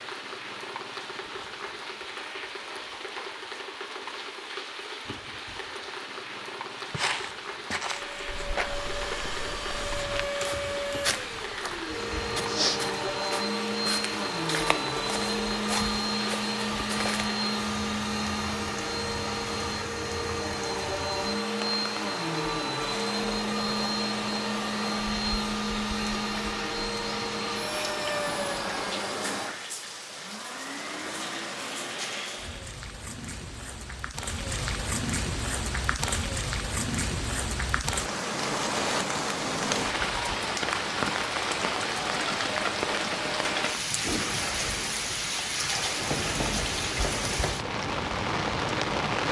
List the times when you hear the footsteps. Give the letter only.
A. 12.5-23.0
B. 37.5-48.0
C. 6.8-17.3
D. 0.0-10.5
C.